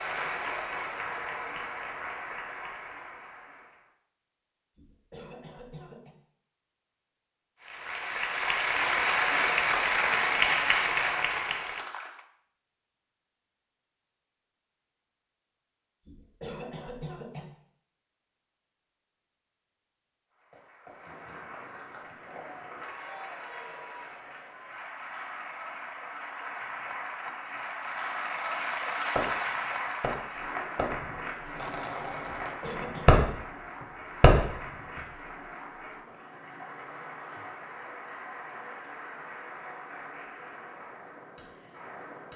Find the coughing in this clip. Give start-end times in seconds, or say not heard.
4.8-6.2, 16.1-17.4, 32.4-33.3.